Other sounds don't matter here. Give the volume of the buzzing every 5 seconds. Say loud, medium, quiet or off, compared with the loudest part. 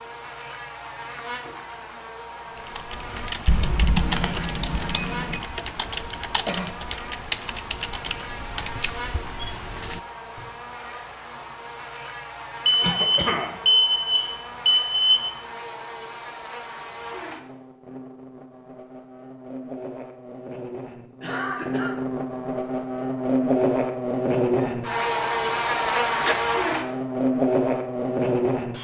quiet, quiet, quiet, quiet, loud, loud.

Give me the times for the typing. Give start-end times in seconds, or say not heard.
2.5-10.6.